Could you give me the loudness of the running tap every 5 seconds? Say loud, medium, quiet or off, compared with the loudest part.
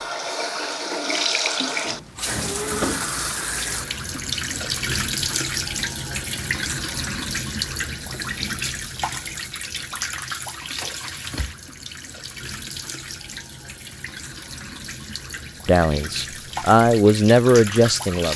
loud, loud, medium, medium.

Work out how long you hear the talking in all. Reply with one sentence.
The talking can be heard for 3 seconds in total.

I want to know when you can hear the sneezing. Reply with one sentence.
The sneezing can't be heard in this clip.